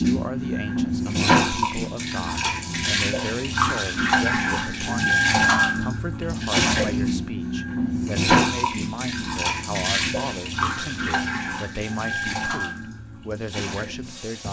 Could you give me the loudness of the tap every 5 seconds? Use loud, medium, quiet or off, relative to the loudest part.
loud, loud, medium.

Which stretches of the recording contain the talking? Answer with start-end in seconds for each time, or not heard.
0.0-14.4.